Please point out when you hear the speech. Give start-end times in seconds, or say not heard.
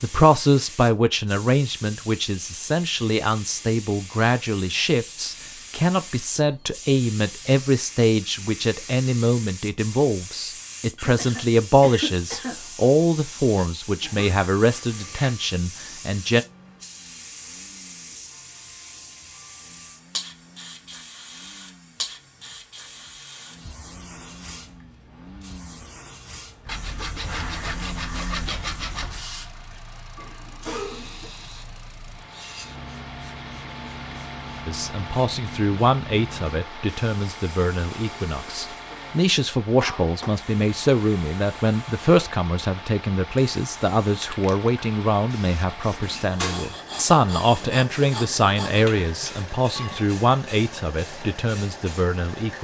0.0-16.4, 34.6-52.6.